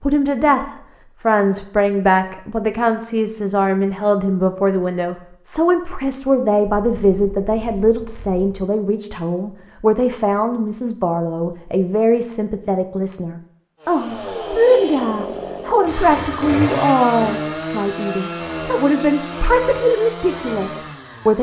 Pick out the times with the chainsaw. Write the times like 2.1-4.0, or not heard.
13.8-21.3.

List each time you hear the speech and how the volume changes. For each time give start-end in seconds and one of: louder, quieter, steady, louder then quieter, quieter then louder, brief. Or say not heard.
0.0-21.3 steady.